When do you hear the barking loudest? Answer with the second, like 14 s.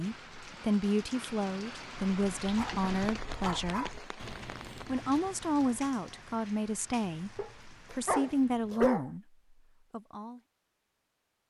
9 s.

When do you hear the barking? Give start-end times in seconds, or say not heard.
2.5-4.0, 7.3-9.1.